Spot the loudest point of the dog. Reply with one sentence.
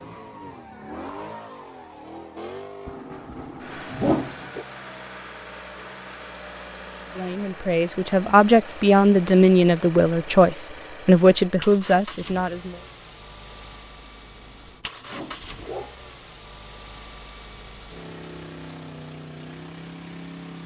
The volume of the dog peaks at 4 seconds.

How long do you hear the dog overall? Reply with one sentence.
You can hear the dog for 4 seconds altogether.